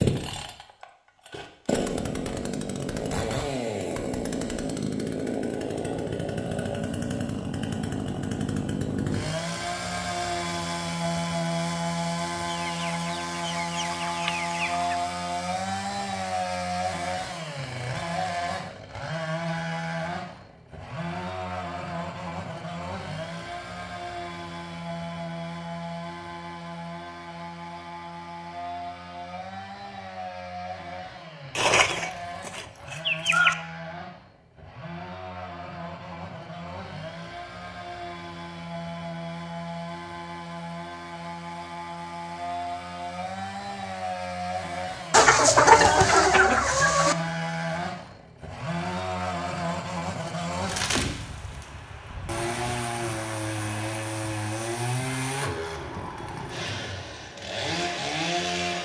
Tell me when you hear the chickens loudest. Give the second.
46 s.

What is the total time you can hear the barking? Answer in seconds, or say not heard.
not heard.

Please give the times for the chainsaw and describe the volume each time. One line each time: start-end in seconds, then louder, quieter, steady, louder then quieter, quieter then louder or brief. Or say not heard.
0.0-58.8 quieter then louder.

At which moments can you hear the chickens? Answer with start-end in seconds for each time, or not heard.
12.4-15.0, 31.6-33.5, 45.1-47.1.